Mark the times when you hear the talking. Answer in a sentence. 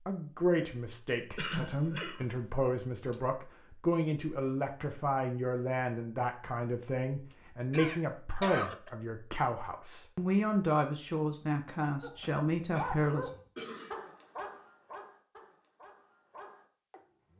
You can hear the talking from 0.1 to 13.3 s.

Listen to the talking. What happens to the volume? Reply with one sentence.
The volume of the talking stays about the same.